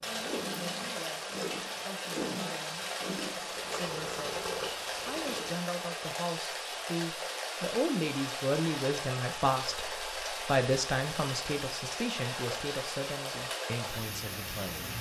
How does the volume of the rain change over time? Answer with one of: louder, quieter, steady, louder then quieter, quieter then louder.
steady.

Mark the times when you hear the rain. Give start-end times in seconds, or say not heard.
0.0-14.9.